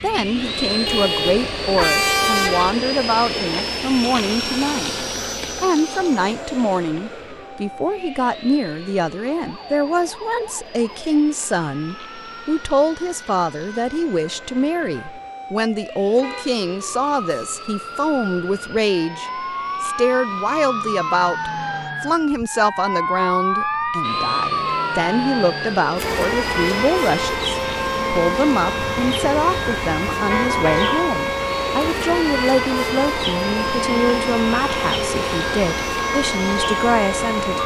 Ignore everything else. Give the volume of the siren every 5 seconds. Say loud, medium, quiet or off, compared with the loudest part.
quiet, quiet, quiet, medium, loud, loud, loud, loud.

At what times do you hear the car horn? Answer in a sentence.
The car horn can be heard from 0.8 to 2.8 s, from 16.1 to 16.6 s and from 28.8 to 31.1 s.